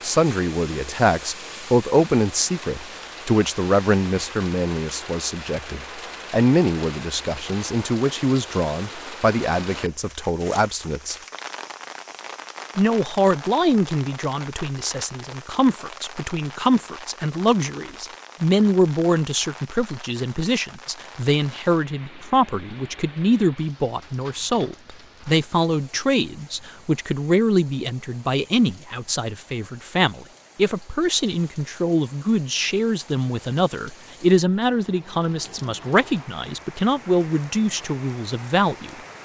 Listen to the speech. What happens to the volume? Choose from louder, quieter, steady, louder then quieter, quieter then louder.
steady.